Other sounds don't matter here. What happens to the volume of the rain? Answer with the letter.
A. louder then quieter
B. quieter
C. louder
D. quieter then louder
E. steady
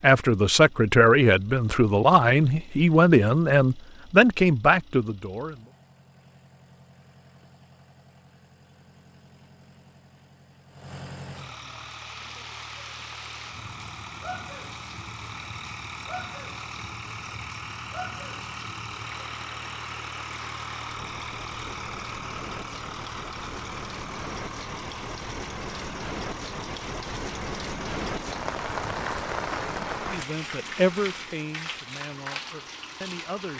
C.